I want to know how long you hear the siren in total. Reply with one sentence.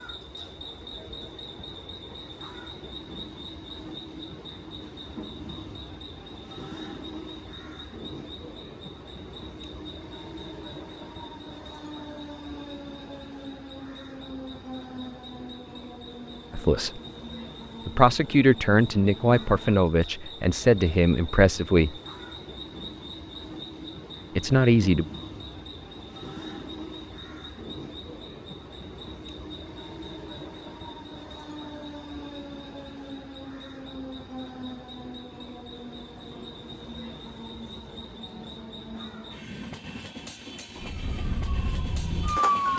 You can hear the siren for 2 seconds altogether.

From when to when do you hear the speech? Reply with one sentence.
You can hear the speech from 16.5 to 17.0 s, from 17.9 to 21.9 s and from 24.4 to 25.1 s.